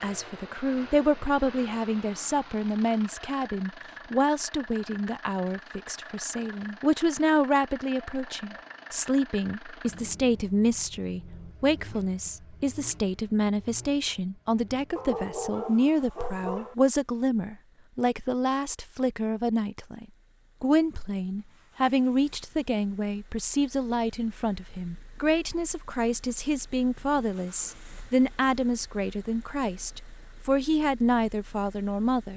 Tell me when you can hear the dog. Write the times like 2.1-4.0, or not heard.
14.9-16.8.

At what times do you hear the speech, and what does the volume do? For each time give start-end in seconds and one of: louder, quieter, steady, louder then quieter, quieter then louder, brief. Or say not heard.
0.0-32.3 steady.